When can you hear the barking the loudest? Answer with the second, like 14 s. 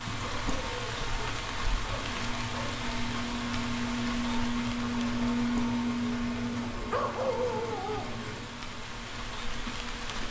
7 s.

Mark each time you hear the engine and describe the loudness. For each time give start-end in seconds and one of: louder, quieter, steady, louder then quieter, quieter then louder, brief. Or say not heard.
0.0-10.2 louder then quieter.